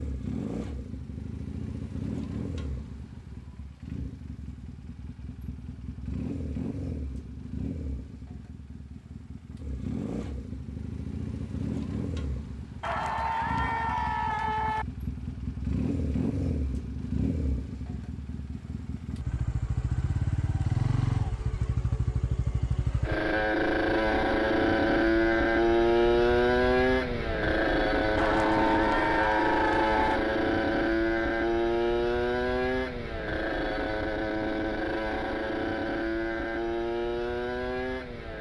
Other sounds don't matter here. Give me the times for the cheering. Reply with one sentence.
You can hear the cheering from 12.8 to 14.8 s and from 28.1 to 30.2 s.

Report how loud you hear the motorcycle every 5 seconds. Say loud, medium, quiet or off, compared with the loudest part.
quiet, quiet, quiet, medium, loud, loud, loud, medium.